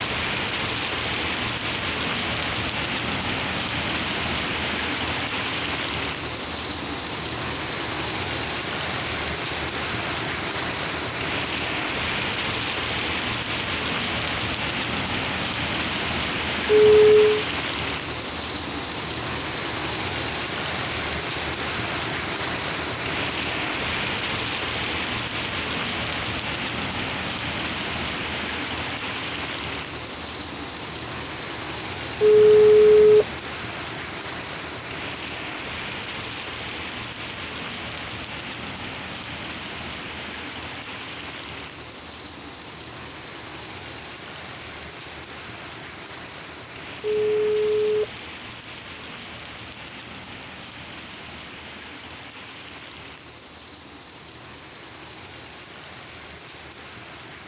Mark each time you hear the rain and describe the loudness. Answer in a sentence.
The rain can be heard from 0.0 to 57.4 s, getting quieter.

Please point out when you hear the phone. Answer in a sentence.
You can hear the phone from 16.6 to 17.4 s, from 32.2 to 33.3 s and from 47.0 to 48.1 s.